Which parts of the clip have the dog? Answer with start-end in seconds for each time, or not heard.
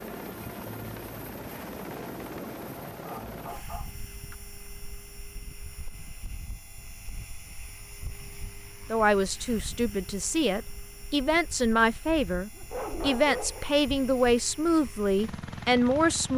2.9-4.3, 12.6-13.8.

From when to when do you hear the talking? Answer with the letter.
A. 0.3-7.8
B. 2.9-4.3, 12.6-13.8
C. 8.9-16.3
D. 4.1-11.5
C.